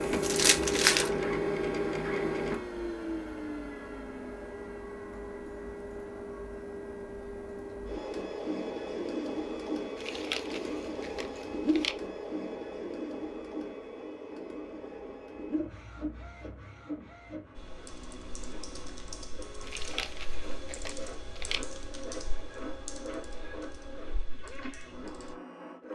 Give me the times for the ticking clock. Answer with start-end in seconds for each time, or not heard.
not heard.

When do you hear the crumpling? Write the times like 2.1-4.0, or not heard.
0.2-1.2, 9.9-11.9, 19.6-21.6.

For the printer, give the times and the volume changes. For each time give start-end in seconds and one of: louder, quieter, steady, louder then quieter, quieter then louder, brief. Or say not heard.
0.0-25.9 quieter.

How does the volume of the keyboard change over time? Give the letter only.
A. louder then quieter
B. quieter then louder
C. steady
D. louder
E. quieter
E.